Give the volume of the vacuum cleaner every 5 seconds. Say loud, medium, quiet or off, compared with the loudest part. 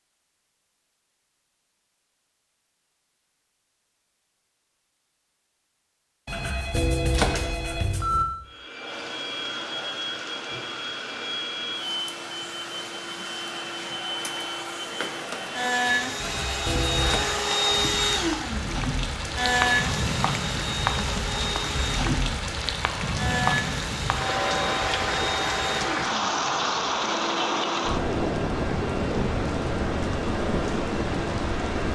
off, medium, medium, loud, medium, medium, medium.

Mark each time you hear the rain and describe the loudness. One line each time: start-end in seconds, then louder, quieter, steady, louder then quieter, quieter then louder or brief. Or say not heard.
8.8-31.9 louder.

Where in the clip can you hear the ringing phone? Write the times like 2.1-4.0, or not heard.
6.2-8.2, 16.1-17.3.